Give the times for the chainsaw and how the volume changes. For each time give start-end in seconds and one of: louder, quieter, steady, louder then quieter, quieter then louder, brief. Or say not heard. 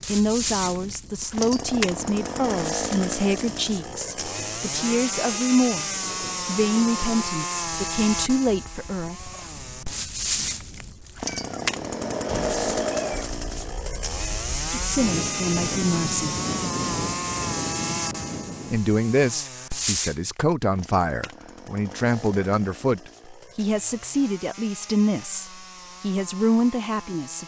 0.0-27.4 quieter.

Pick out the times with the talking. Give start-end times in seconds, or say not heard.
0.1-9.3, 14.7-16.4, 18.7-27.4.